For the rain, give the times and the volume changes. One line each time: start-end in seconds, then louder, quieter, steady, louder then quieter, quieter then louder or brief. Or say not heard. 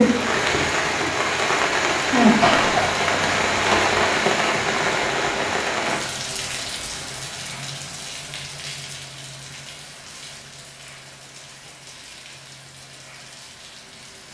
0.0-14.2 quieter.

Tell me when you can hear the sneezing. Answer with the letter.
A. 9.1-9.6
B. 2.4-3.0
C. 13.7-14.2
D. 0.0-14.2
B.